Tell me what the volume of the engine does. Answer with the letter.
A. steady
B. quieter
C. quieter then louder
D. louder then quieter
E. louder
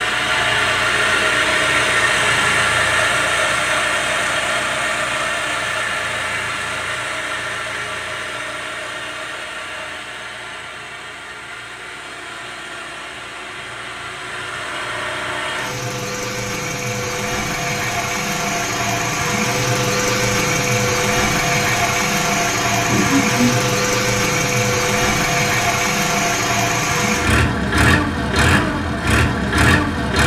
C.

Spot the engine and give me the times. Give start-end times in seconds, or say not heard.
0.0-30.2.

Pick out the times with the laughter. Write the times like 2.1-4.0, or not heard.
22.9-23.5.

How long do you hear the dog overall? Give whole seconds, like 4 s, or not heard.
not heard.